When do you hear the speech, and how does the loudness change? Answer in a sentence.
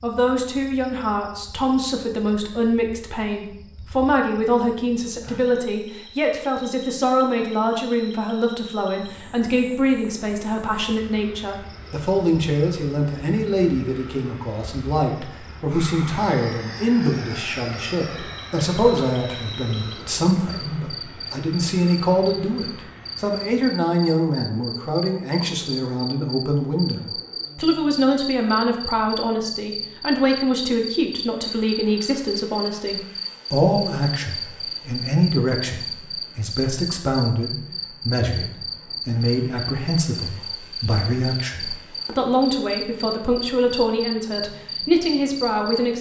The speech can be heard from 0.0 to 45.9 s, at a steady volume.